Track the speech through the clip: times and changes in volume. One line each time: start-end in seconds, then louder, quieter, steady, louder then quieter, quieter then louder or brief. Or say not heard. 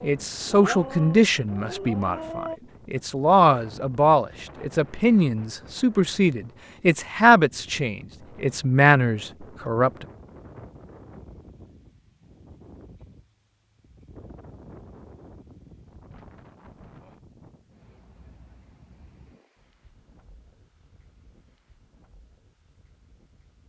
0.0-10.1 steady.